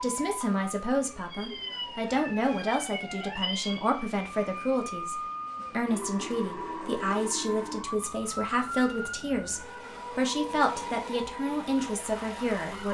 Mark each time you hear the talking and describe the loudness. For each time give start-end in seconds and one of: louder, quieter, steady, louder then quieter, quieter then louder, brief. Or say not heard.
0.0-12.8 steady.